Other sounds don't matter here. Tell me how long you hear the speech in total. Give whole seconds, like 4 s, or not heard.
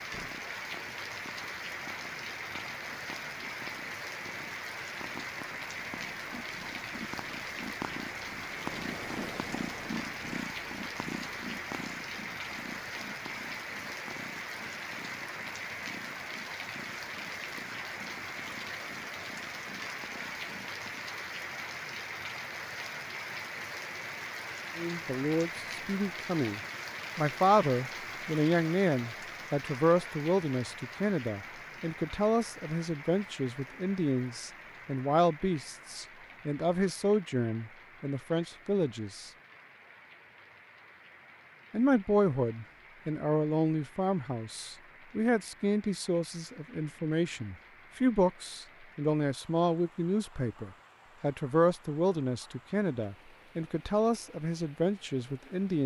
29 s.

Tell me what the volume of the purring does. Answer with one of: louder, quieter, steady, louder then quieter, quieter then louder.
louder then quieter.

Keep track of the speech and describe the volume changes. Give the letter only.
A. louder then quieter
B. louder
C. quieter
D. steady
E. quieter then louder
D.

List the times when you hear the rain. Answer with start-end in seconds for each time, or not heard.
0.0-55.8.